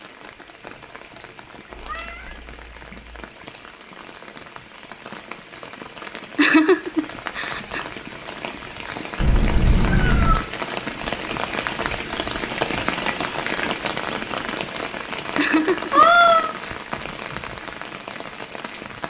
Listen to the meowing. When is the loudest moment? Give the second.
16 s.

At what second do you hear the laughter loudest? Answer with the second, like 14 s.
7 s.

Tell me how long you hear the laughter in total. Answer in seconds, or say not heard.
2 s.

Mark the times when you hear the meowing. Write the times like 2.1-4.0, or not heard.
1.7-3.2, 9.2-10.4, 15.9-16.5.